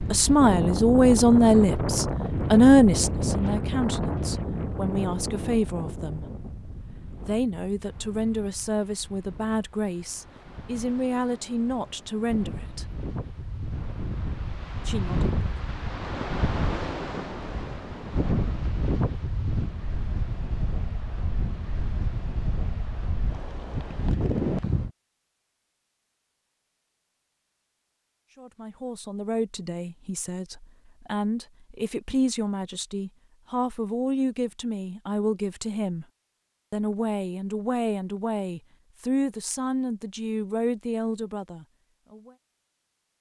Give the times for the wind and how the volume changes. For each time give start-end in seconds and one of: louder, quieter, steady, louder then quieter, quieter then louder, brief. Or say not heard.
0.0-24.9 quieter then louder.